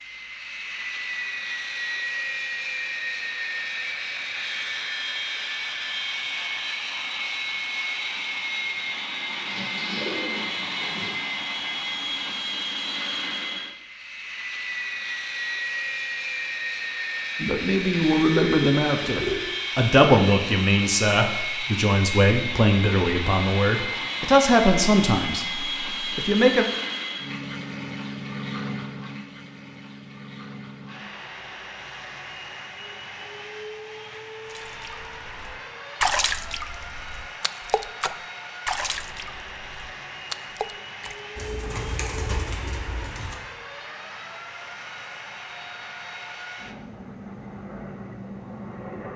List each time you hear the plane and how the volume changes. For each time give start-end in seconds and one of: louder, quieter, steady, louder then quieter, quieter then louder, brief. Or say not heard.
0.0-49.1 quieter.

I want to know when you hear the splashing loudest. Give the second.
36 s.